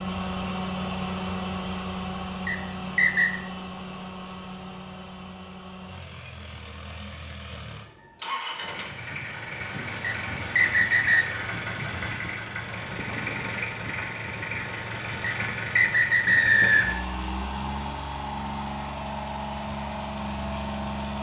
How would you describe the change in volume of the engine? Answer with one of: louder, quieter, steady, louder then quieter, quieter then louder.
quieter then louder.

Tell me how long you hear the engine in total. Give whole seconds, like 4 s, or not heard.
21 s.